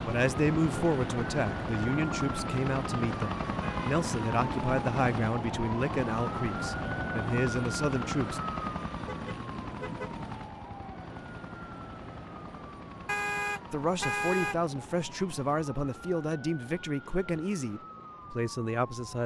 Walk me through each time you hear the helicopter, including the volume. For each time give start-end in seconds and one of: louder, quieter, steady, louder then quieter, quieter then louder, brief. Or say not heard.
0.0-19.2 quieter.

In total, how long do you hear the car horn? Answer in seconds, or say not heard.
3 s.